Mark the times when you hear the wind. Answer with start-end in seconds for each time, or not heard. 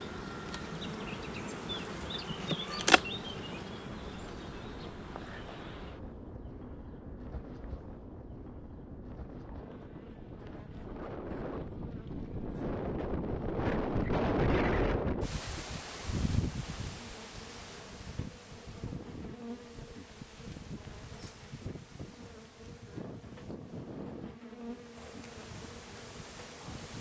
0.0-26.9.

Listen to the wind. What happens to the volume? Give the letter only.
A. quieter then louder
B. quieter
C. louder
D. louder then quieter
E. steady
D.